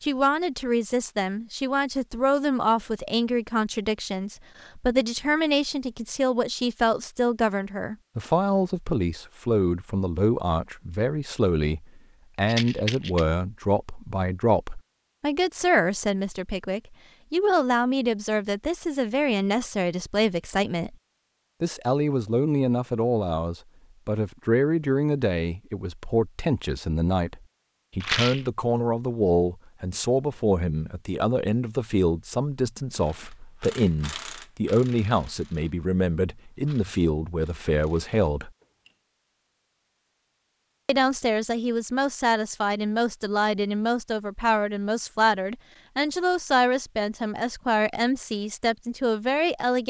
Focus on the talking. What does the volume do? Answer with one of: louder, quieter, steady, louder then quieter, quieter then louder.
steady.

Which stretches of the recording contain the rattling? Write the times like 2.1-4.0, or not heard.
12.4-13.2, 28.0-28.5.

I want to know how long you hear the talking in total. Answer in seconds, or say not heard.
47 s.